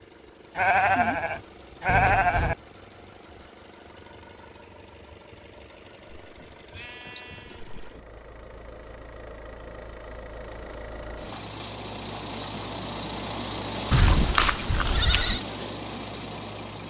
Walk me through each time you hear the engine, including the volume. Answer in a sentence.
You can hear the engine from 0.0 to 16.8 s, getting louder.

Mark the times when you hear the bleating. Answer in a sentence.
You can hear the bleating from 0.6 to 2.5 s, from 6.2 to 8.0 s and from 13.9 to 15.4 s.